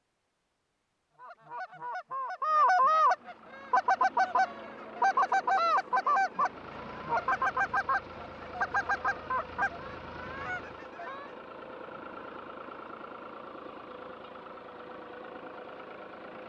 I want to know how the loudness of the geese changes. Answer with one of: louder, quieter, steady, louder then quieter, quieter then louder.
quieter.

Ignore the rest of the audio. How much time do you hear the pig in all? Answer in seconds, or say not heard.
not heard.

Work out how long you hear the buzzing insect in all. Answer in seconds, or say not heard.
not heard.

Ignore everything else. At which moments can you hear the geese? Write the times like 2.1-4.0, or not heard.
1.1-11.3.